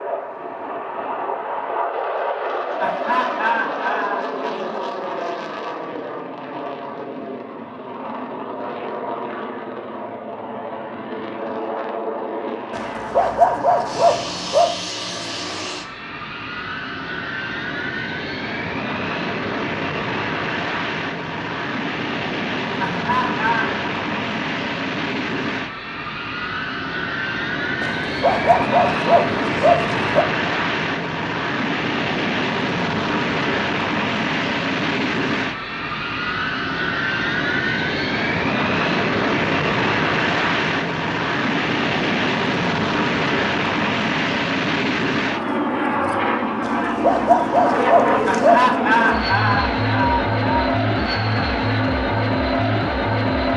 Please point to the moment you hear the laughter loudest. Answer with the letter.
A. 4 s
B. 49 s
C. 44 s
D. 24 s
B.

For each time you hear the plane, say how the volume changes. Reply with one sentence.
The plane can be heard from 0.0 to 53.5 s, getting louder.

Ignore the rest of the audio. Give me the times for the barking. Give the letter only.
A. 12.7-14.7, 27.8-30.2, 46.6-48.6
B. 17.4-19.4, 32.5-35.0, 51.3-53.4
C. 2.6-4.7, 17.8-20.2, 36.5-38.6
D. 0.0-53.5
A.